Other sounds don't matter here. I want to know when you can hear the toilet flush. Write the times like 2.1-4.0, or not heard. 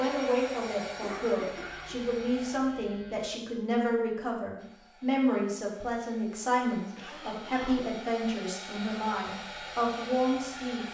not heard.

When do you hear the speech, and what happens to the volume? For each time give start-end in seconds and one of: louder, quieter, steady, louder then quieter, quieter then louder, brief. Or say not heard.
0.0-10.8 steady.